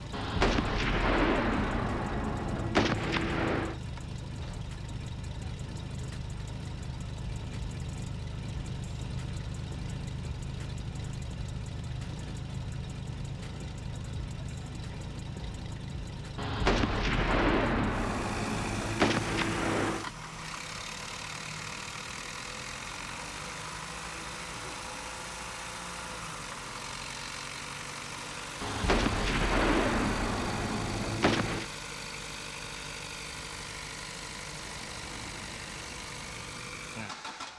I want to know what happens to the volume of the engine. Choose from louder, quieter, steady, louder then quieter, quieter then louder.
steady.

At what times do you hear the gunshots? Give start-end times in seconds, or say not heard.
0.1-3.8, 16.4-20.1, 28.6-31.6.